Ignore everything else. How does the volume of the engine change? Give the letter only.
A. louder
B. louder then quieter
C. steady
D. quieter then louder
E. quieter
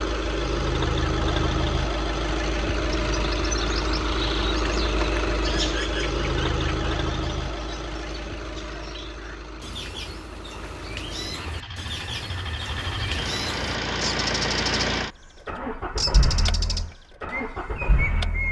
D.